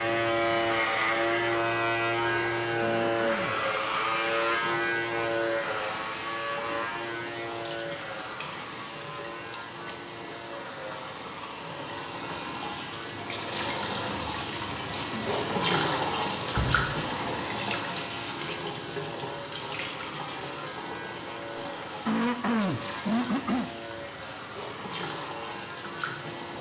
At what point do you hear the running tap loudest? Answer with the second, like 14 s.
16 s.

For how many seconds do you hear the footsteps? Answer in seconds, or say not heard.
not heard.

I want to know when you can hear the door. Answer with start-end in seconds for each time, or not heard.
16.4-17.4.